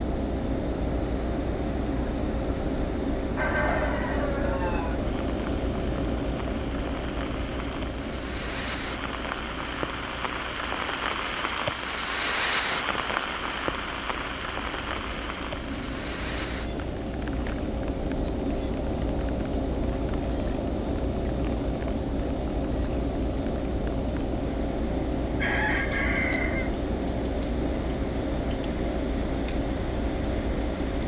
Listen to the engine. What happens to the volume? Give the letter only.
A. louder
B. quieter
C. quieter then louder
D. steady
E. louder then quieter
C.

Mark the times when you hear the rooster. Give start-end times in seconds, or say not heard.
3.4-5.0, 25.4-26.8.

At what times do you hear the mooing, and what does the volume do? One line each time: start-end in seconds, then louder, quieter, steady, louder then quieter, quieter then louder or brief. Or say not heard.
not heard.